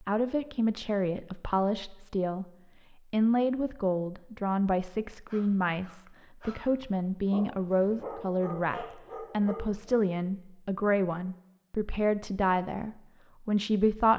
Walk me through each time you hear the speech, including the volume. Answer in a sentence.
You can hear the speech briefly from 0.0 to 2.5 s; and from 3.1 to 14.1 s, at a steady volume.